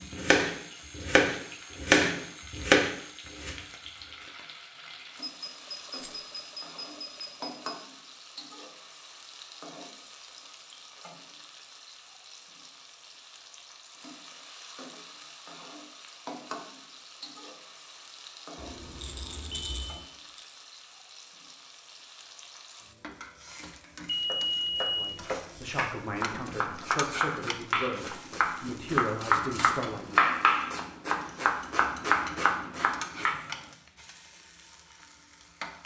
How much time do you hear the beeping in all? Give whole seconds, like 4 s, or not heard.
5 s.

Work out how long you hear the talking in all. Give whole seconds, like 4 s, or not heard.
5 s.